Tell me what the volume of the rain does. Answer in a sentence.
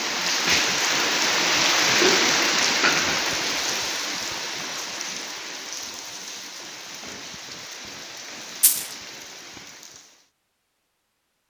The volume of the rain goes down.